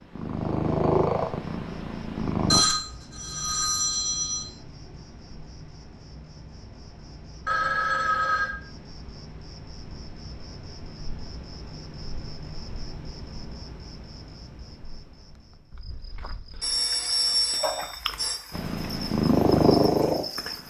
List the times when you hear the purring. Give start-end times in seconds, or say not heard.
0.1-2.6, 18.5-20.6.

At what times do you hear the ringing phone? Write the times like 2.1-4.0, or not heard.
2.5-4.5, 7.5-8.6, 16.6-18.4.